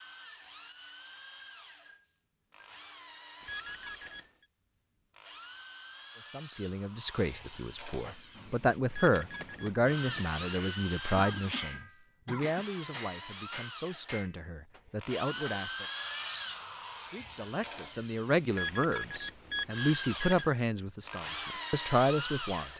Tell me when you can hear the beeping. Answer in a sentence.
You can hear the beeping from 3.4 to 4.5 s, from 8.8 to 9.7 s and from 18.5 to 20.4 s.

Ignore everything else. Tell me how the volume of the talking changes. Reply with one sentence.
The volume of the talking goes down, then up.